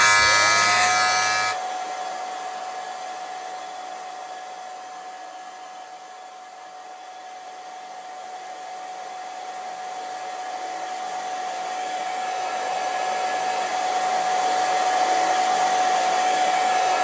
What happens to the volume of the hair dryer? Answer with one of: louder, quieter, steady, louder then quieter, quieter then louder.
quieter then louder.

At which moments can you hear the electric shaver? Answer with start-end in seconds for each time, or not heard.
0.0-1.6.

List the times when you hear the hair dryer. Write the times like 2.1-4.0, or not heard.
0.2-17.0.